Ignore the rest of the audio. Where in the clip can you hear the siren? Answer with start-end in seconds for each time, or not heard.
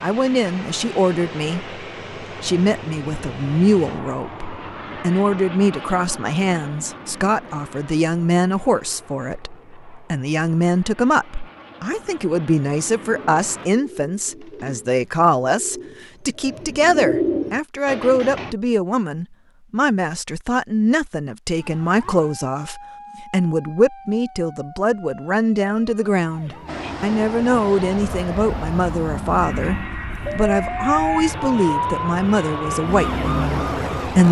21.6-34.2.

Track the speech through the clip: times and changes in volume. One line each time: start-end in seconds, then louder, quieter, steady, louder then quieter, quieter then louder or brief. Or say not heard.
0.0-34.2 steady.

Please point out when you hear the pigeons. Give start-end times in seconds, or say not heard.
13.1-18.6.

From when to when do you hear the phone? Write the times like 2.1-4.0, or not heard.
not heard.